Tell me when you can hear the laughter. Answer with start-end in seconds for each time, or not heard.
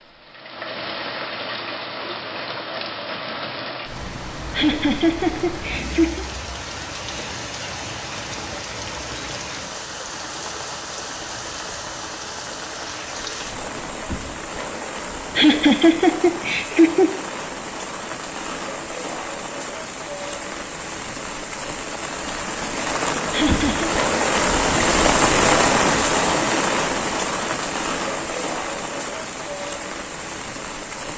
4.5-6.2, 15.3-17.1, 23.3-23.9.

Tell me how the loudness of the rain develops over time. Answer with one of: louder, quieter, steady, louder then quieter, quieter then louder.
louder.